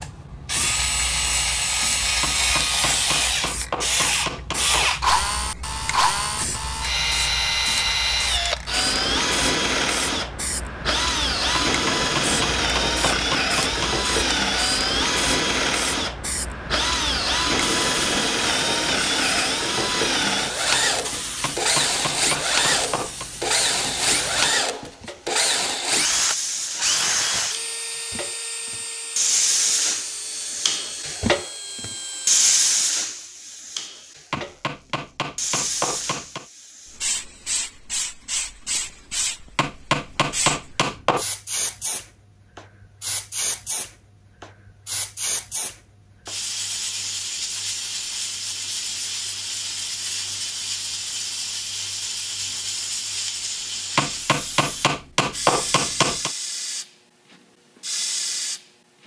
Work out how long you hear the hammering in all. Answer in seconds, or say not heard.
13 s.